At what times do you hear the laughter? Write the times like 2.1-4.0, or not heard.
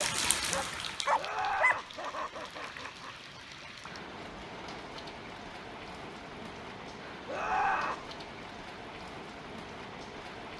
1.1-3.1, 7.2-8.1.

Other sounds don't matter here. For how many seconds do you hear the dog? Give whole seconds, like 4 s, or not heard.
2 s.